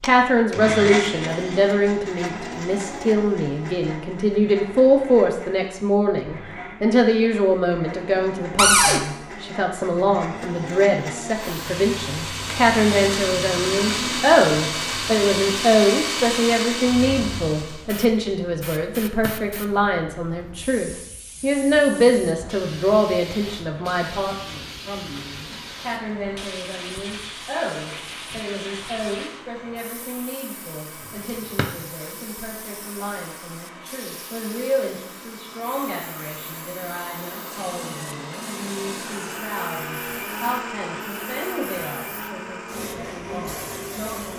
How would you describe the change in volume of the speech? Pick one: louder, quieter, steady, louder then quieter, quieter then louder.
quieter.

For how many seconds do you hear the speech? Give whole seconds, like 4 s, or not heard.
44 s.